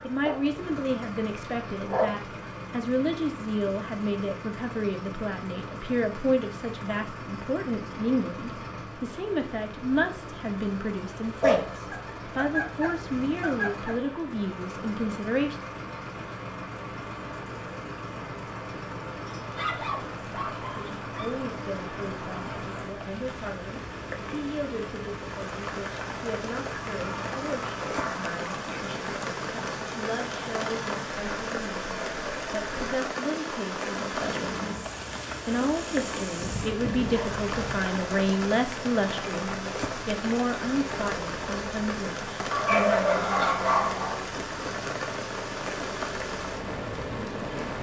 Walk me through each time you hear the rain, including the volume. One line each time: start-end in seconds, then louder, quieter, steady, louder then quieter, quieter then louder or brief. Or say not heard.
0.0-47.7 louder.